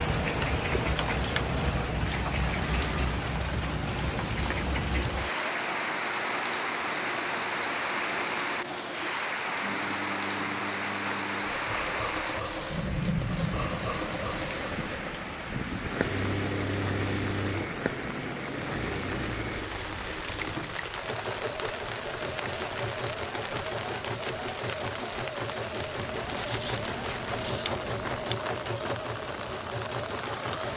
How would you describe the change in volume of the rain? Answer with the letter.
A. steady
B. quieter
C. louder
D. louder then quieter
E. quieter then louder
B.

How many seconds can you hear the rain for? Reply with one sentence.
You can hear the rain for 31 seconds altogether.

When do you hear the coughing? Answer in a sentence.
You can't hear the coughing here.